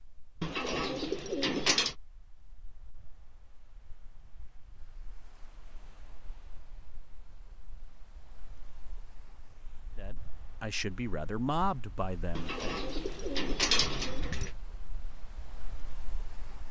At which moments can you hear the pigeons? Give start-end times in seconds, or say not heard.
0.4-1.9, 12.3-14.5.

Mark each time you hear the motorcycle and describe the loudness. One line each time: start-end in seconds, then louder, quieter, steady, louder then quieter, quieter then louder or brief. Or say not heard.
not heard.